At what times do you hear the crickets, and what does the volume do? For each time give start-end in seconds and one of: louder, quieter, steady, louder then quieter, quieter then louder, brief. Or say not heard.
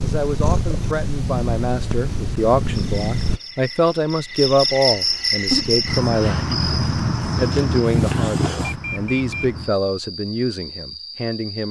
2.7-11.6 louder then quieter.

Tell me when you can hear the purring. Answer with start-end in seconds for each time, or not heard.
0.0-3.4, 5.3-8.8.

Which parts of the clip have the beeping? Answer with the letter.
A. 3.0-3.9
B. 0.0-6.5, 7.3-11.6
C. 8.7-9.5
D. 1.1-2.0
C.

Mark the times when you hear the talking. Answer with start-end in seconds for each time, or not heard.
0.0-6.5, 7.3-11.6.